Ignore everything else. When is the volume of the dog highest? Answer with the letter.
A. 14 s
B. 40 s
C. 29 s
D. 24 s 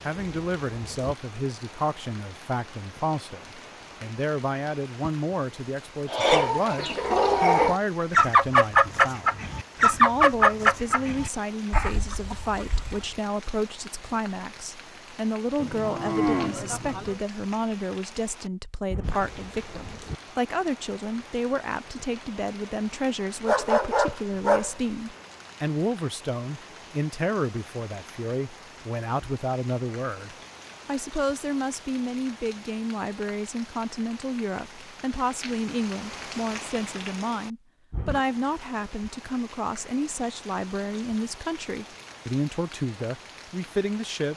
D.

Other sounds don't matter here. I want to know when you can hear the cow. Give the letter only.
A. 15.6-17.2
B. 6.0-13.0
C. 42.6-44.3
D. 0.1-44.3
A.